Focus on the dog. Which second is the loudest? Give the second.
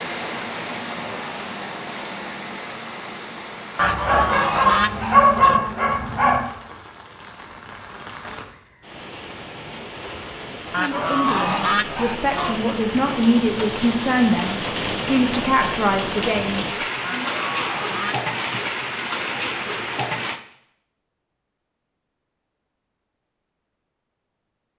5 s.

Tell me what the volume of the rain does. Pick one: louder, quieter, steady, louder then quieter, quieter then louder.
quieter then louder.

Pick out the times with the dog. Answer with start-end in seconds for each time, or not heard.
3.8-6.5.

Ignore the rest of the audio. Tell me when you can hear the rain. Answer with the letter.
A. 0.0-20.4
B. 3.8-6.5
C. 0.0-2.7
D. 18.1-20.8
A.